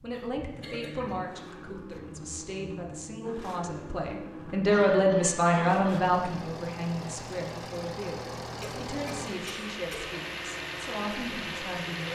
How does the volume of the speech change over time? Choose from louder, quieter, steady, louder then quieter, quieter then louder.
louder then quieter.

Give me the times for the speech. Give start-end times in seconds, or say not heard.
0.0-12.0.